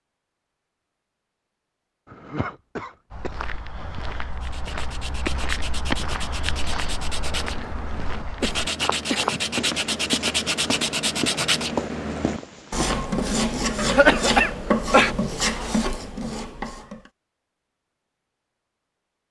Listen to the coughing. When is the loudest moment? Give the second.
14 s.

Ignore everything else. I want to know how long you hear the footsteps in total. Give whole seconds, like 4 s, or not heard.
10 s.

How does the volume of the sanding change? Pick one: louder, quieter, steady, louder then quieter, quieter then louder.
louder.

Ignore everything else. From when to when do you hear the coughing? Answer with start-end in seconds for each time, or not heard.
2.1-4.1, 8.4-10.0, 13.8-15.2.